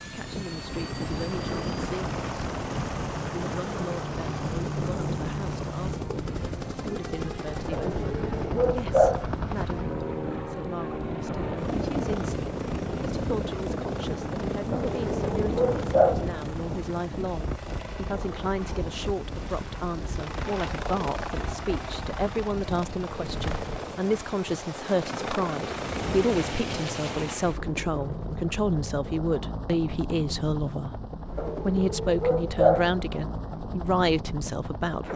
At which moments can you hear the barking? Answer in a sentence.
You can hear the barking from 7.7 to 9.2 s, from 14.7 to 16.2 s and from 31.4 to 33.0 s.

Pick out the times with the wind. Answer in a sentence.
The wind can be heard from 0.0 to 23.8 s.